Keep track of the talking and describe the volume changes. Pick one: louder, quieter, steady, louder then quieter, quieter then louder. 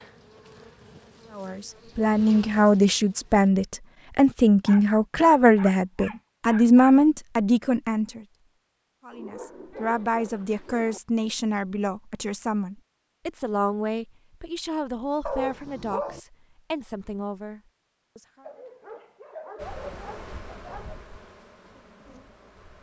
quieter.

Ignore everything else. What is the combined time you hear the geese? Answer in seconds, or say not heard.
not heard.